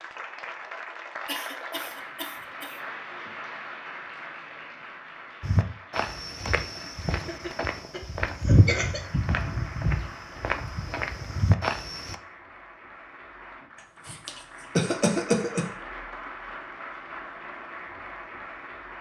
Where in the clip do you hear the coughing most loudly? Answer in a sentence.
The loudest moment of the coughing is at 15 seconds.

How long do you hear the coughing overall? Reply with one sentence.
You can hear the coughing for 5 seconds altogether.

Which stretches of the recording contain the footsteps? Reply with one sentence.
The footsteps can be heard from 5.4 to 12.2 s.